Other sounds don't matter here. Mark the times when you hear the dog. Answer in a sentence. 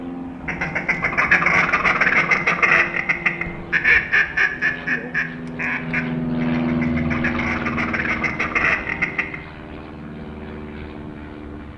The dog can't be heard in this clip.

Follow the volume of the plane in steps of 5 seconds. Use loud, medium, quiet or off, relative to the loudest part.
medium, loud, medium.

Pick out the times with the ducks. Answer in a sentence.
The ducks can be heard from 0.3 to 9.4 s.